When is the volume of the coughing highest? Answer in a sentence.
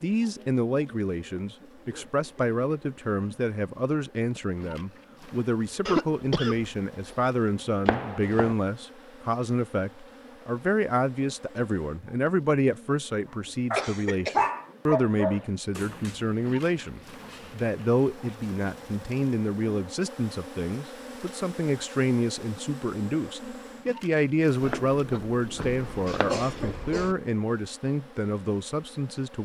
The loudest moment of the coughing is at 6 seconds.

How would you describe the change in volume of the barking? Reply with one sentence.
The volume of the barking goes down.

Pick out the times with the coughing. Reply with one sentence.
You can hear the coughing from 5.8 to 7.3 s, from 13.8 to 14.4 s and from 25.6 to 27.1 s.